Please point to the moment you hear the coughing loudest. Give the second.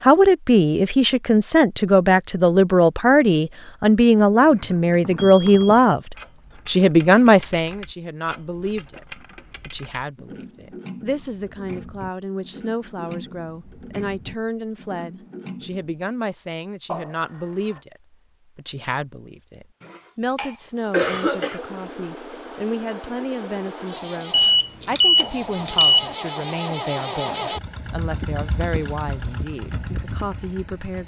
21 s.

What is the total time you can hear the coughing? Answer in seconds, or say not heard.
2 s.